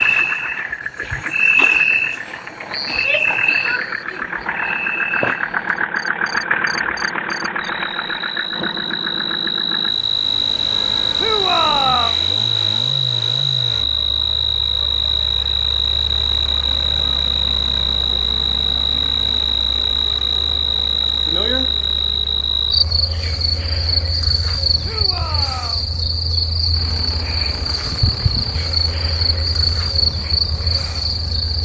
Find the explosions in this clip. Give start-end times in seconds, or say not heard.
not heard.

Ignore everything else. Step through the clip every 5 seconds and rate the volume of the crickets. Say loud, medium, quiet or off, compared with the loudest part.
loud, medium, loud, loud, loud, loud, loud.